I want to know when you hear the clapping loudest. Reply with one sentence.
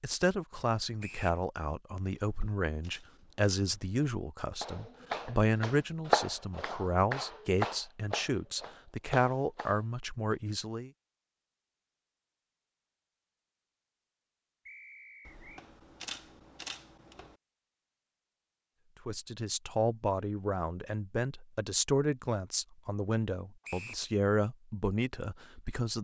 The volume of the clapping peaks at 6 seconds.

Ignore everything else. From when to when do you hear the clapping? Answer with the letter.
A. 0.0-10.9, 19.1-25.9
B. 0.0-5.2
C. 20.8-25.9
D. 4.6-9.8
D.